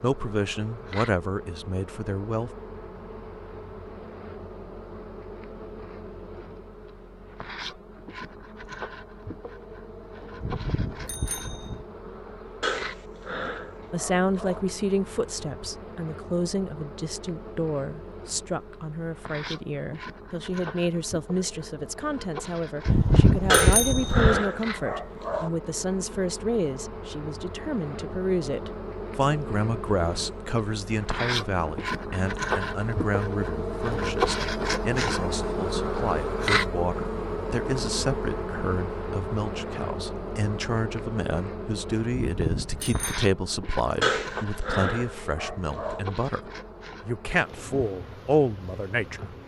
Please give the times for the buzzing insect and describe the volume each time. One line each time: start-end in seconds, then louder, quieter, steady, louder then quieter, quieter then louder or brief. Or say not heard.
0.0-49.4 louder then quieter.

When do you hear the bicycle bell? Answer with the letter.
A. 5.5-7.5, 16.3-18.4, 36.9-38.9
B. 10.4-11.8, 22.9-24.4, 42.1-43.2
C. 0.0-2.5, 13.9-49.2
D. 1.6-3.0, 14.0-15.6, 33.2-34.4
B.